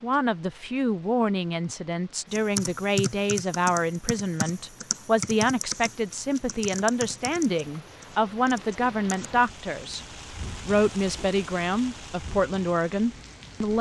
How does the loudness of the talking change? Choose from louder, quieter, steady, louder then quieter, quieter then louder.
steady.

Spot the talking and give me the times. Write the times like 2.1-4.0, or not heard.
0.0-10.1, 10.7-13.7.